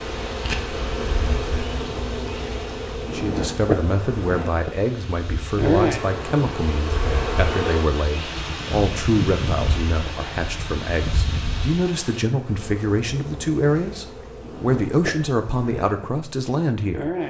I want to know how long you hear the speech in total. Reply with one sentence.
You can hear the speech for 14 seconds altogether.